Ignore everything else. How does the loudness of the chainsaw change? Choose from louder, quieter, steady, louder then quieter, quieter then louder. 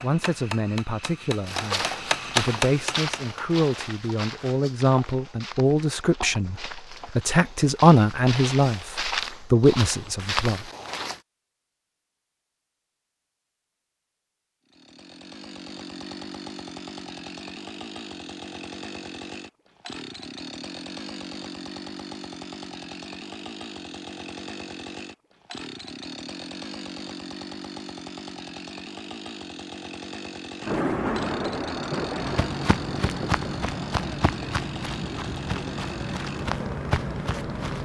steady.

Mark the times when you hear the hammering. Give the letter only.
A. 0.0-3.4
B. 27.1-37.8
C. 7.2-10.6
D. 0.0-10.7
A.